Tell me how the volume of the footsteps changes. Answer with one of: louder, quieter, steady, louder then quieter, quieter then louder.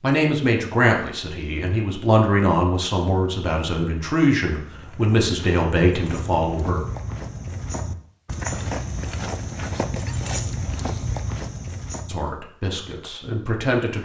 louder.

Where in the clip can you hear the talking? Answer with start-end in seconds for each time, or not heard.
0.0-6.8, 12.1-14.0.